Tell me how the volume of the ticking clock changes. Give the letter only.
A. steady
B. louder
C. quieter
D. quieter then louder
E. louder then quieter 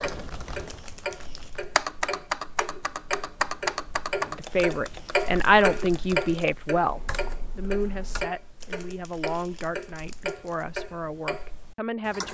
E.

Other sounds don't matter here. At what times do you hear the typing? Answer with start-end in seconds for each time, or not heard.
0.0-8.3.